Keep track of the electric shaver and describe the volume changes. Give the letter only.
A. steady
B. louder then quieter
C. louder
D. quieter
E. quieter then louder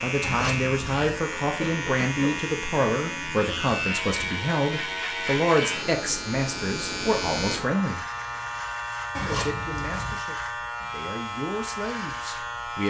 A.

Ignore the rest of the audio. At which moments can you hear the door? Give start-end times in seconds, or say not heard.
not heard.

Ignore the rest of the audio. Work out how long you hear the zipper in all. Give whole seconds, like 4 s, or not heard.
2 s.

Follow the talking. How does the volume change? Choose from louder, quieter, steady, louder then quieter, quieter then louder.
quieter.